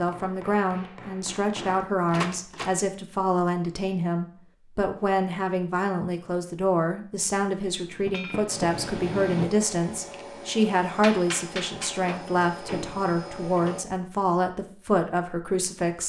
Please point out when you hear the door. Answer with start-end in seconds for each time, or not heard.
2.1-2.8, 8.1-8.7, 11.9-13.9.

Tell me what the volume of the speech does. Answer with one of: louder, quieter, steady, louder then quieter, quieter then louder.
steady.